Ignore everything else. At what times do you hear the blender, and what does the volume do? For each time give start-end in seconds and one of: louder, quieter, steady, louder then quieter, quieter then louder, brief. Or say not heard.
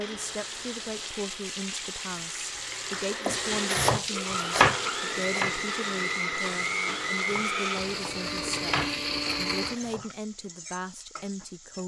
0.0-9.8 louder.